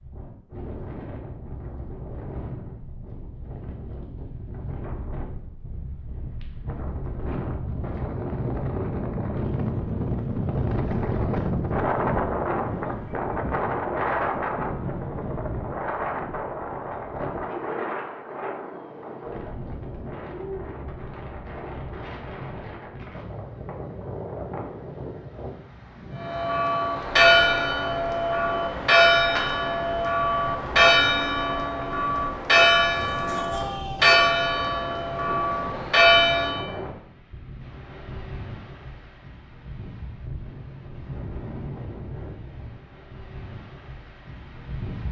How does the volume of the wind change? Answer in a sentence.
The volume of the wind goes up, then down.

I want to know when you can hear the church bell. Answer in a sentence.
You can hear the church bell from 26.1 to 36.6 s.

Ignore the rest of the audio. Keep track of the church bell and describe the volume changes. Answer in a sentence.
The loudness of the church bell stays about the same.